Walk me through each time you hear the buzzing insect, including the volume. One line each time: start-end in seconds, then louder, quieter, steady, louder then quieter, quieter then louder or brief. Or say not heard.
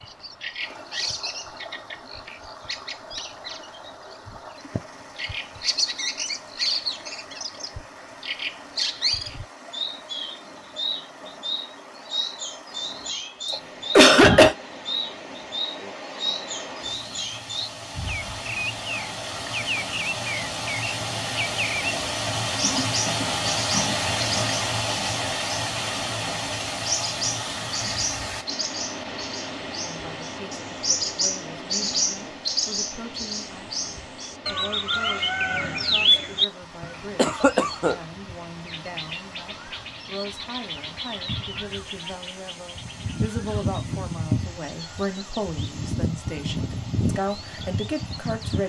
not heard.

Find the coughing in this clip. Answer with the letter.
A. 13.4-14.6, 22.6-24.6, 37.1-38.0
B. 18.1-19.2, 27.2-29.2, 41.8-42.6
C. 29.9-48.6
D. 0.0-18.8
A.